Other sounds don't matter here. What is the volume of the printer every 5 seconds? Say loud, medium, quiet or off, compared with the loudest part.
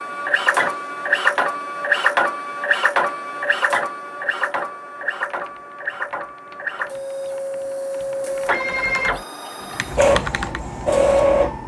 loud, medium, loud.